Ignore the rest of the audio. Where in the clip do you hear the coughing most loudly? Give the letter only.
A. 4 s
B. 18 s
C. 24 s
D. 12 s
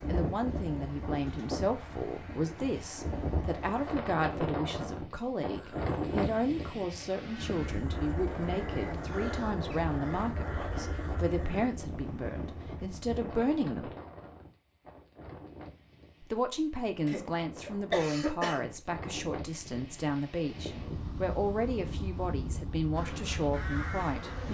B.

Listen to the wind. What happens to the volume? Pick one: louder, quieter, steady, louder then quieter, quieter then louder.
quieter then louder.